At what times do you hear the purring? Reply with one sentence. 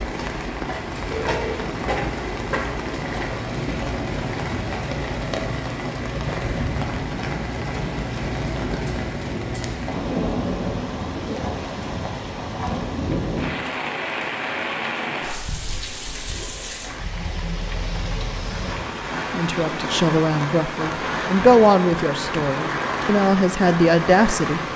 The purring can't be heard in this clip.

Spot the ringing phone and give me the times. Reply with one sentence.
You can hear the ringing phone from 1.1 to 1.6 s.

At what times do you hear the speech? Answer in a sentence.
The speech can be heard from 19.3 to 24.6 s.